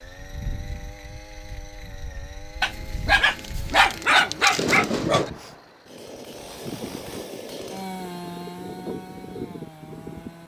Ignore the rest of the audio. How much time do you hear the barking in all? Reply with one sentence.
You can hear the barking for 3 seconds altogether.